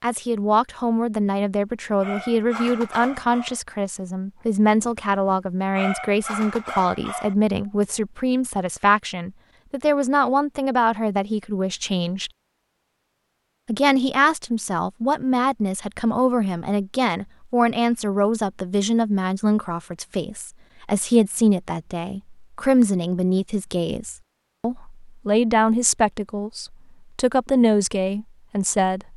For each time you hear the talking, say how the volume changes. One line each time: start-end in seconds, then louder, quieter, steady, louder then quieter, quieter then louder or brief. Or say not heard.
0.0-12.3 steady
13.7-29.1 steady.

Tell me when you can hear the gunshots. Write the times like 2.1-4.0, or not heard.
not heard.